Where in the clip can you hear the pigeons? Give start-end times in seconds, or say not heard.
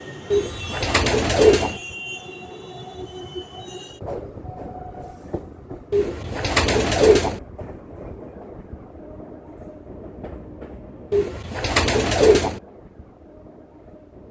0.3-1.8, 5.9-7.4, 11.1-12.6.